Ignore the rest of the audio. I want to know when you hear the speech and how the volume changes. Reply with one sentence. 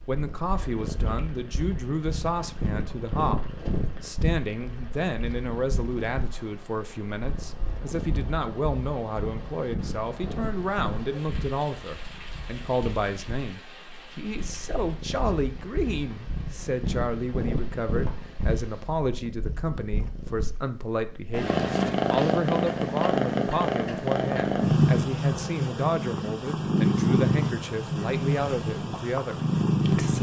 You can hear the speech from 0.1 to 30.1 s, at a steady volume.